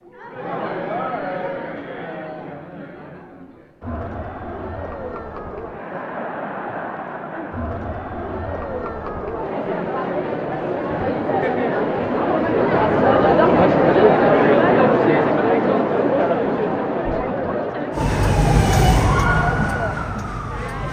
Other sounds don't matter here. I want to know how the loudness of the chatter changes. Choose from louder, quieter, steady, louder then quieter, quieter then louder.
louder then quieter.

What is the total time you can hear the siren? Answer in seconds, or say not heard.
3 s.